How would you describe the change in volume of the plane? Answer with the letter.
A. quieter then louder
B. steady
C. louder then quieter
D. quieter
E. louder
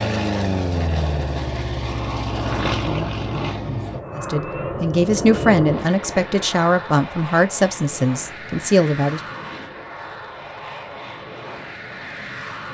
D.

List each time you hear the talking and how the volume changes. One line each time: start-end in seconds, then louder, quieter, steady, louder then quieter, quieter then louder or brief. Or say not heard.
4.2-9.2 steady.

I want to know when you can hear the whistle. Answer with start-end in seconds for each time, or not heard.
not heard.